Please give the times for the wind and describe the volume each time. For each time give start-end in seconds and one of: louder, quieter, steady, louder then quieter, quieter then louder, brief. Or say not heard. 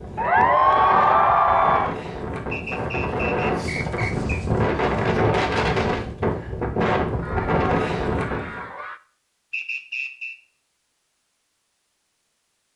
0.0-8.7 louder.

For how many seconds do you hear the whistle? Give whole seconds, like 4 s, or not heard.
3 s.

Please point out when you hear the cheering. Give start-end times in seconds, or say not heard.
0.1-1.9, 7.2-9.0.